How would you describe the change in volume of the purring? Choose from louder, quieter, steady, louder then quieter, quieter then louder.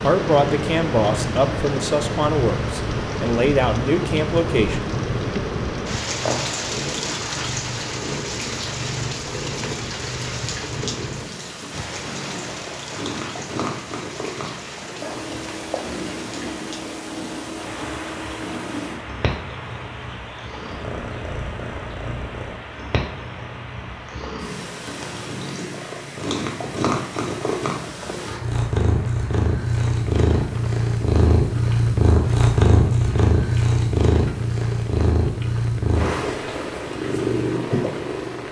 louder.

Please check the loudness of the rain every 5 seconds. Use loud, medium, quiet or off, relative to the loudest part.
loud, loud, medium, medium, medium, quiet, quiet, quiet.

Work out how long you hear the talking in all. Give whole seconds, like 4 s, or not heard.
5 s.